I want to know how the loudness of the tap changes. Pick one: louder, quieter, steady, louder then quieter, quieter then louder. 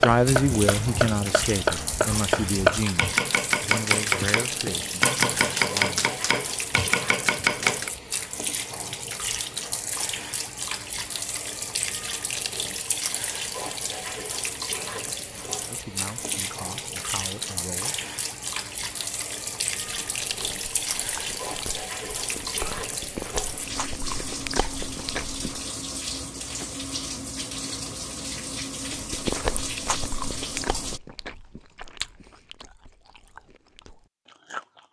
steady.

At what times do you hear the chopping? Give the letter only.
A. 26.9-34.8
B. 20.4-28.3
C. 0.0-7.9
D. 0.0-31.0
C.